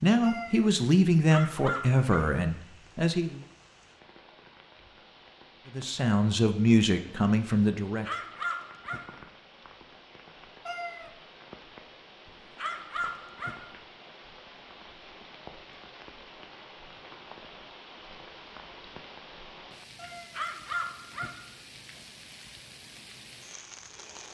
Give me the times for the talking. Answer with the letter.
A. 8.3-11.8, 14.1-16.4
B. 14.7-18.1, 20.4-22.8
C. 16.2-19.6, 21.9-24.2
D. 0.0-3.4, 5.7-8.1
D.